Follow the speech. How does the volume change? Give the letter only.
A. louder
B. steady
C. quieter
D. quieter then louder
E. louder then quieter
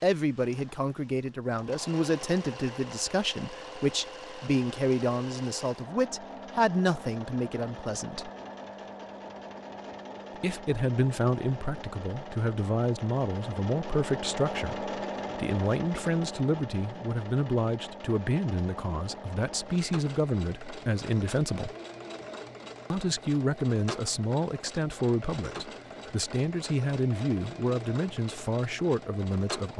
B.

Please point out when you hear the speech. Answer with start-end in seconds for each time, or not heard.
0.0-8.3, 10.4-21.7, 22.9-29.7.